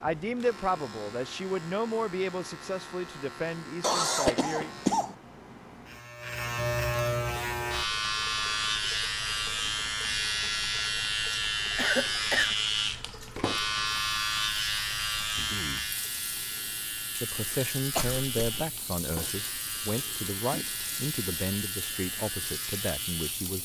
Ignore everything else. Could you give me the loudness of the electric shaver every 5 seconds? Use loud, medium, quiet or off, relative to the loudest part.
quiet, loud, loud, medium, medium.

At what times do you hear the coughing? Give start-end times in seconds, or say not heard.
3.8-5.2, 11.8-12.6, 17.9-18.4.